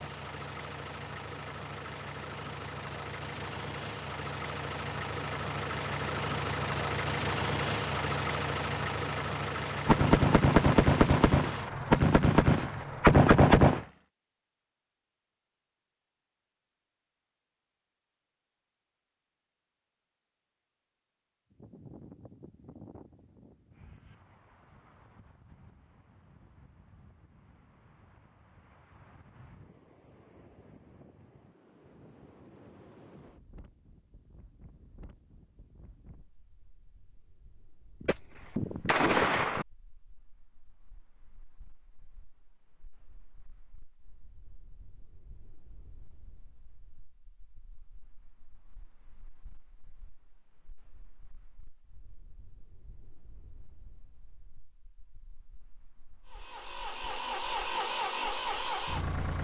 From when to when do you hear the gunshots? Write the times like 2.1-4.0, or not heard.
9.8-13.8, 38.0-39.6.